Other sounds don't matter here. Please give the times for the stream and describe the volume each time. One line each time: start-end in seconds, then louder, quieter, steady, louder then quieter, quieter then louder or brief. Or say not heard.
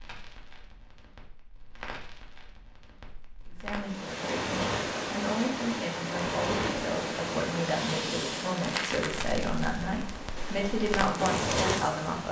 3.8-12.2 quieter.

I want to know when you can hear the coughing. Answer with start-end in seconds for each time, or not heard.
not heard.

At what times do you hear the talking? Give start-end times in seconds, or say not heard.
3.5-12.2.